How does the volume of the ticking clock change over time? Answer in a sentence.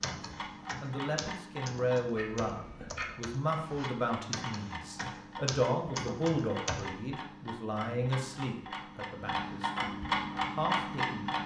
The loudness of the ticking clock goes up.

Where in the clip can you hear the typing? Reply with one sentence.
The typing can be heard from 0.0 to 7.0 s.